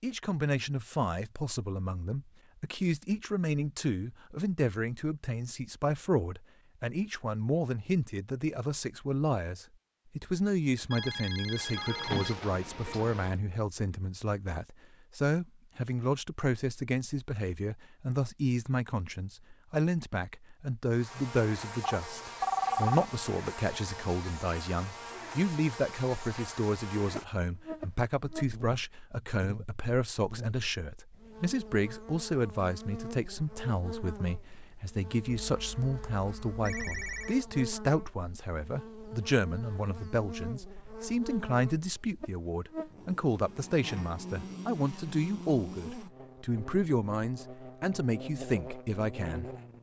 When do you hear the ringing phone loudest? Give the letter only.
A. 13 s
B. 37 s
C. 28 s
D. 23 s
D.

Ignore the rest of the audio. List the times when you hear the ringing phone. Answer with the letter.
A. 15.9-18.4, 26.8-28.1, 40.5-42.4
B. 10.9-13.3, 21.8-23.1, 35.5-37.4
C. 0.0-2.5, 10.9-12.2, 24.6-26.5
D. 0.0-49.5
B.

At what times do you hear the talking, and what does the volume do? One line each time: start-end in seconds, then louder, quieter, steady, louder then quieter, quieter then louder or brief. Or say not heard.
0.0-49.5 steady.